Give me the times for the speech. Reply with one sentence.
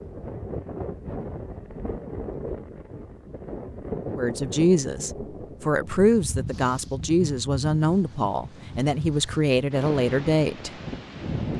The speech can be heard from 4.2 to 10.7 s.